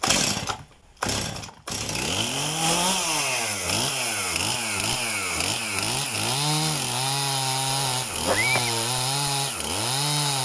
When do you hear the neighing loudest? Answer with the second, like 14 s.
8 s.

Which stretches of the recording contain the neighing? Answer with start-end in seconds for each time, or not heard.
2.8-3.3, 7.7-8.7.